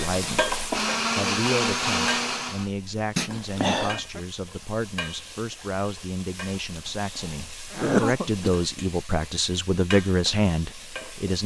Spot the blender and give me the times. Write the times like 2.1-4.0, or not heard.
0.1-2.7.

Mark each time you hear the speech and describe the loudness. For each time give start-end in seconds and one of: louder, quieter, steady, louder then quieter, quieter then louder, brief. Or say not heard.
0.0-0.5 brief
1.1-11.4 louder.